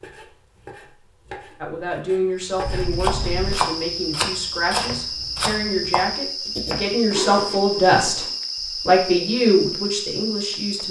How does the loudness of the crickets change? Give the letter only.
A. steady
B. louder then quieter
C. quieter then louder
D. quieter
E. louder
A.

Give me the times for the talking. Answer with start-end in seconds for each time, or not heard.
1.6-8.2, 8.8-10.8.